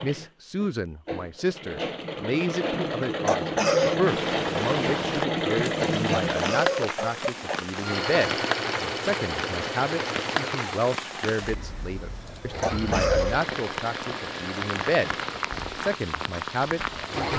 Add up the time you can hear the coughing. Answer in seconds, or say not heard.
3 s.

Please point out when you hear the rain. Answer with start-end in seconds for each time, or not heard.
4.0-17.3.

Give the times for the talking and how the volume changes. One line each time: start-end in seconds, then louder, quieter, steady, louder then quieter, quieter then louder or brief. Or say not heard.
0.0-17.3 steady.